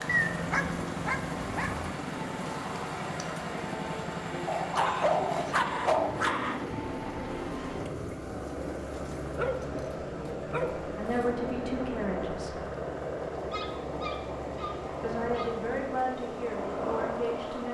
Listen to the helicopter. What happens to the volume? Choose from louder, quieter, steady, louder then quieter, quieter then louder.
steady.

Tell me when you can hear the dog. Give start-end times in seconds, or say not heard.
0.1-1.9, 4.5-6.7, 9.3-11.3, 13.5-15.7.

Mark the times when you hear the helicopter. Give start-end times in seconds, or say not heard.
0.0-17.6.